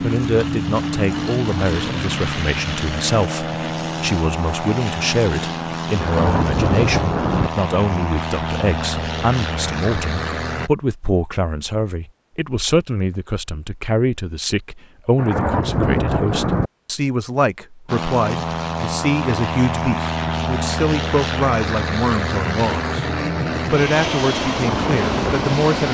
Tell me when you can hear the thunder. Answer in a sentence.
You can hear the thunder from 6.0 to 7.5 s and from 15.2 to 16.7 s.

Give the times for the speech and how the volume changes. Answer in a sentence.
You can hear the speech from 0.0 to 23.1 s, at a steady volume; and briefly from 23.7 to 25.8 s.